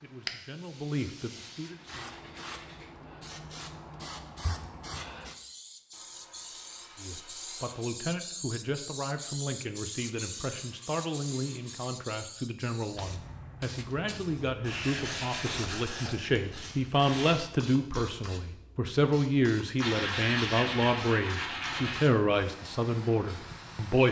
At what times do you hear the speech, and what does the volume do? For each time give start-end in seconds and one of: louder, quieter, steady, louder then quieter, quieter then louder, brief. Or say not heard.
0.0-2.1 brief
7.0-24.0 louder.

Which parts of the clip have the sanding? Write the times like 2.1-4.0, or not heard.
1.6-2.9, 5.9-8.0, 9.9-11.9, 14.6-17.4, 19.8-22.1.